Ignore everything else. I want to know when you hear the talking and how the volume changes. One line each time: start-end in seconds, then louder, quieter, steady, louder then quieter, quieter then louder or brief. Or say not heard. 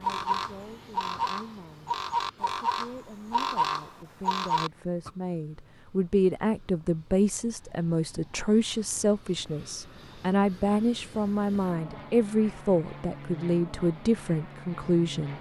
0.0-15.3 louder.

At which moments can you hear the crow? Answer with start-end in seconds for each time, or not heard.
0.0-5.1.